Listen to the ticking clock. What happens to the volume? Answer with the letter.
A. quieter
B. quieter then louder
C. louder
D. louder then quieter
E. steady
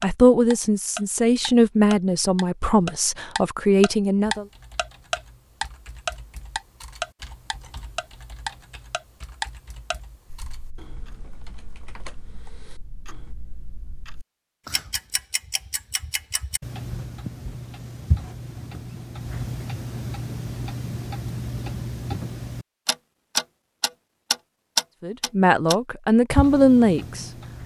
B.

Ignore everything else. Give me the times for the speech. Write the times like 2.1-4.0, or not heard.
0.0-4.5, 25.0-27.6.